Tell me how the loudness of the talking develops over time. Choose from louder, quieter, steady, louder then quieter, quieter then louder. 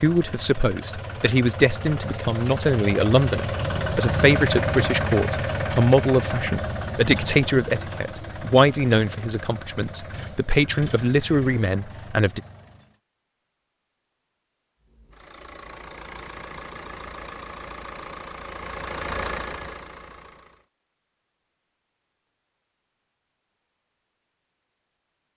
steady.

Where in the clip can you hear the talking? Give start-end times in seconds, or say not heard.
0.0-12.4.